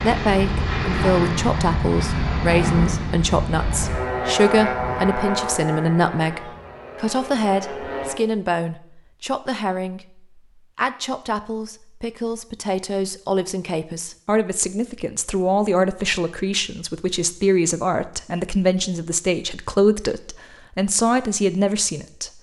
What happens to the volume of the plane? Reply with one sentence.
The loudness of the plane goes down.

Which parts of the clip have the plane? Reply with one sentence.
The plane can be heard from 0.0 to 8.2 s.